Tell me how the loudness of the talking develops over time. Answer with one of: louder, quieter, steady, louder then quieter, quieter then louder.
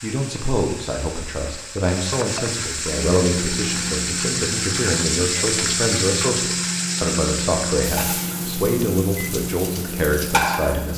steady.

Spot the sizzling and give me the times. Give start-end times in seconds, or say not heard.
0.0-10.9.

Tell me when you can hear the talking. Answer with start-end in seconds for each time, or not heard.
0.0-10.9.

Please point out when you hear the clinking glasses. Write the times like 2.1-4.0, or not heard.
not heard.